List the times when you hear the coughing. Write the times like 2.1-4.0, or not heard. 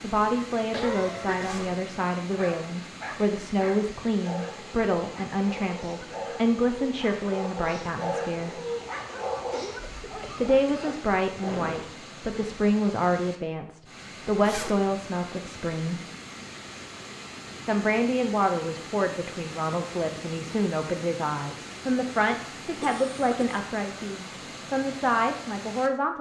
0.7-1.8, 9.3-10.9, 22.8-23.4.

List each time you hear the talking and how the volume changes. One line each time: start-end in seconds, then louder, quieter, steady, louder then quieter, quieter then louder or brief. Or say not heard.
0.0-8.6 steady
10.3-16.0 steady
17.6-26.1 steady.